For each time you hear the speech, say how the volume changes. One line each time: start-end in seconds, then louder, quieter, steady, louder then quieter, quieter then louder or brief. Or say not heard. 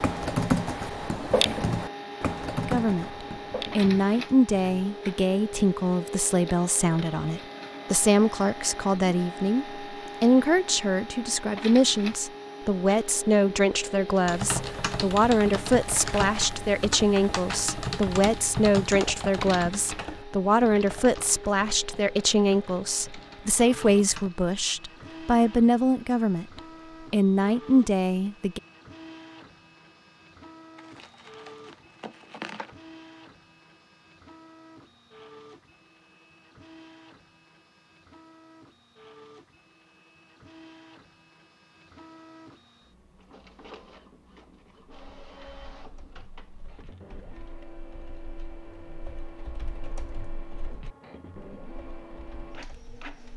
2.6-28.6 steady.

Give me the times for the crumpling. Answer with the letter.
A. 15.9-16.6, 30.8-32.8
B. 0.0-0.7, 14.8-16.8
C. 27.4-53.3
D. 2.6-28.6
A.